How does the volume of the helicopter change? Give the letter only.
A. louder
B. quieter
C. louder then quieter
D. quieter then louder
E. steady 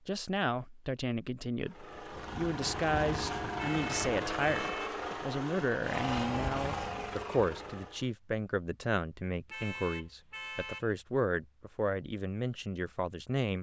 E.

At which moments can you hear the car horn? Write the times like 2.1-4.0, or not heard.
3.5-5.0, 9.5-10.9.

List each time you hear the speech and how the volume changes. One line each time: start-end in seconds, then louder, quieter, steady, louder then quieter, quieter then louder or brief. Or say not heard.
0.1-13.5 steady.